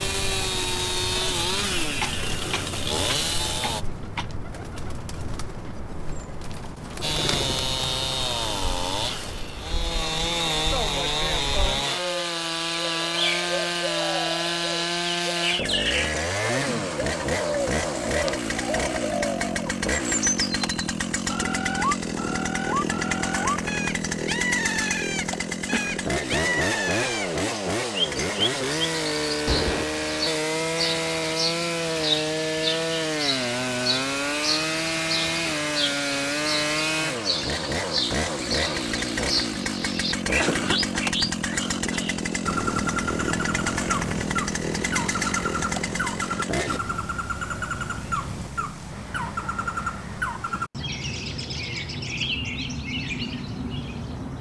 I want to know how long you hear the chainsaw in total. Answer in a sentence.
The chainsaw can be heard for 44 seconds in total.